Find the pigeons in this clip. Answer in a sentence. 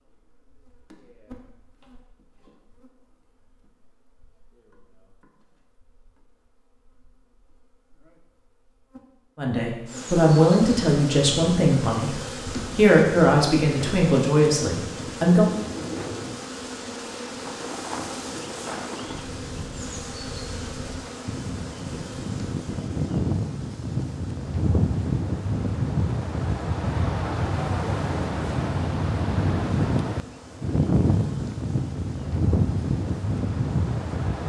The pigeons can't be heard in this clip.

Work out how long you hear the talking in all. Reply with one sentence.
You can hear the talking for 6 seconds altogether.